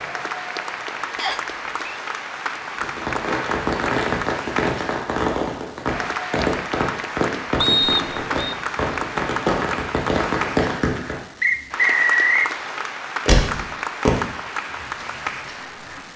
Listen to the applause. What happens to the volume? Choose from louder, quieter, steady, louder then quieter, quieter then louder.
steady.